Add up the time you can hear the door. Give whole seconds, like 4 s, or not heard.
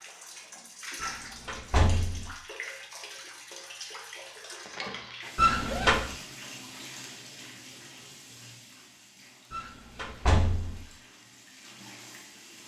3 s.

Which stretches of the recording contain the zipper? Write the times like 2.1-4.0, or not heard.
4.3-6.0.